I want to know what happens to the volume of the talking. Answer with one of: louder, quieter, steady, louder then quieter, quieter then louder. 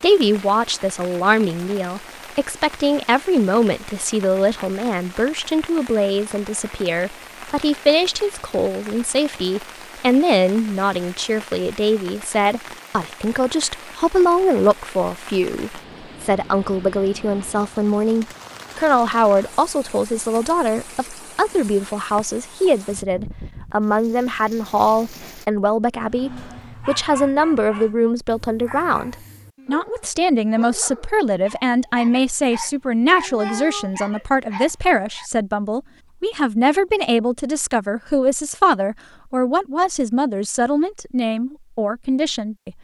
steady.